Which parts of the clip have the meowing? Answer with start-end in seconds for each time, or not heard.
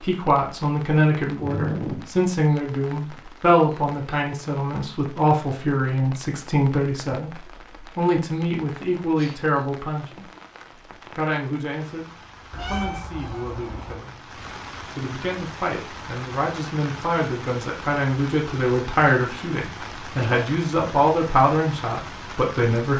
1.4-2.0, 12.5-14.0.